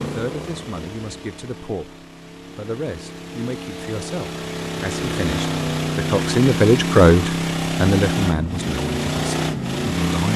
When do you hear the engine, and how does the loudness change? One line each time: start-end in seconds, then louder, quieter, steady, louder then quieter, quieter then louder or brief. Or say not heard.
0.0-10.3 louder.